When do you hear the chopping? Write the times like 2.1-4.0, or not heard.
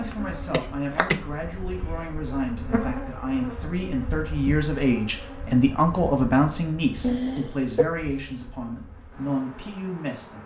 0.5-1.4.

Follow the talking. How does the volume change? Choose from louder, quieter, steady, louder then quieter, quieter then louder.
louder then quieter.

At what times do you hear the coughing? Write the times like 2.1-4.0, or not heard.
0.1-1.2, 7.0-7.9.